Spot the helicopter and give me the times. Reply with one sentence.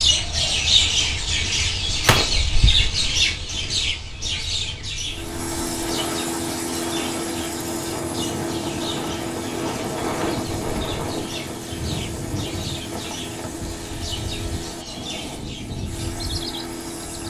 You can hear the helicopter from 5.0 to 17.2 s.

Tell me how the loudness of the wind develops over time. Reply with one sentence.
The loudness of the wind goes up, then down.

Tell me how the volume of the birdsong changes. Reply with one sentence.
The volume of the birdsong goes down.